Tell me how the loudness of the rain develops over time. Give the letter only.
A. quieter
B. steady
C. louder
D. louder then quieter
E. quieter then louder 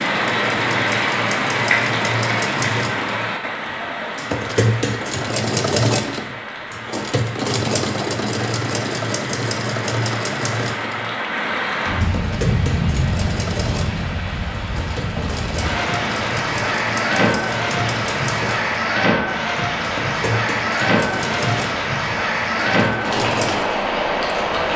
E.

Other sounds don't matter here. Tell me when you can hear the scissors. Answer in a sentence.
The scissors can't be heard in this clip.